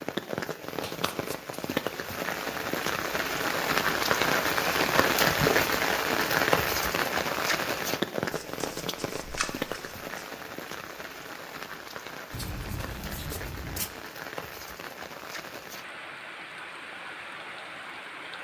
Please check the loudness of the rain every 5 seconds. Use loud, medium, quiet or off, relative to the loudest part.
loud, loud, quiet, quiet.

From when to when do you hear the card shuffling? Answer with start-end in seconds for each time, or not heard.
0.8-1.6, 8.3-10.2, 12.3-13.9.